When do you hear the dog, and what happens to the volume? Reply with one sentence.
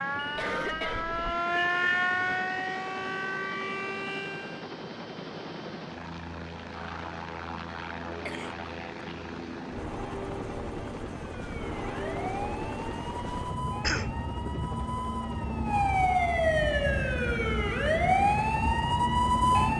You can't hear the dog here.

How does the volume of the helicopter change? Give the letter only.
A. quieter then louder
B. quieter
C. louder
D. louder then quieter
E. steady
C.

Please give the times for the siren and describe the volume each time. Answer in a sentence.
You can hear the siren from 0.0 to 4.7 s, getting louder then quieter; and from 11.2 to 19.7 s, getting louder.